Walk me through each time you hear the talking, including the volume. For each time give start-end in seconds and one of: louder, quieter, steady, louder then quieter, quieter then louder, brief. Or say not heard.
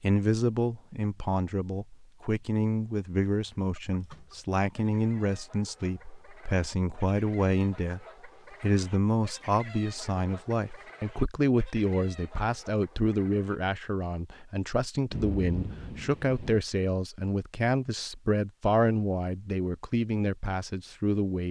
0.0-21.4 steady.